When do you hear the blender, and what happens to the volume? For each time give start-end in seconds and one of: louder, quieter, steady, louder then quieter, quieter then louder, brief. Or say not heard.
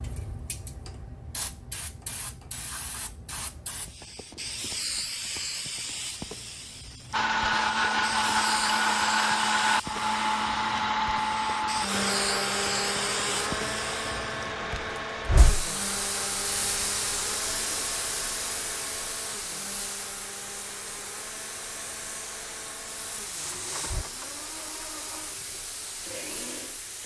7.1-27.0 quieter.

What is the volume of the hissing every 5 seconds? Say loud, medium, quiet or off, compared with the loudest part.
medium, loud, loud, loud, medium, medium.